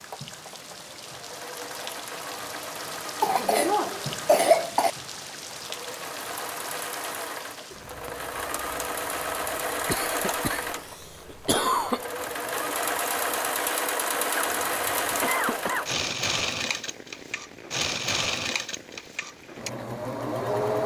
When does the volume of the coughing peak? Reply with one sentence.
The volume of the coughing peaks at 4 seconds.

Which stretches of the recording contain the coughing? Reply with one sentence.
You can hear the coughing from 3.2 to 4.9 s, from 9.8 to 12.0 s and from 14.3 to 15.9 s.